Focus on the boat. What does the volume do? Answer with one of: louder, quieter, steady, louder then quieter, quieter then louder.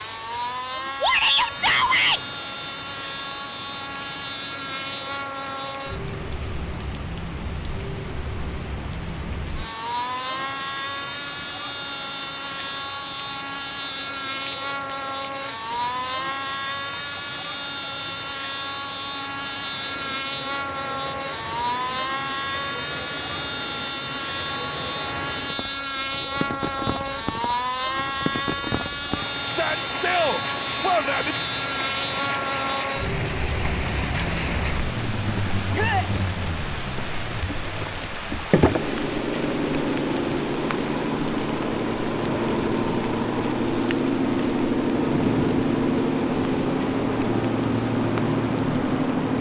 louder.